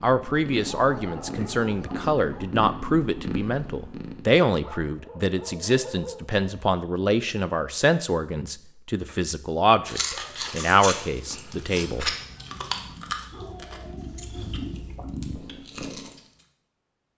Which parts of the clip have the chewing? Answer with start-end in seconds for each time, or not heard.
9.8-16.4.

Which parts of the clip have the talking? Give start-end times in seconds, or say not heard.
0.0-12.2.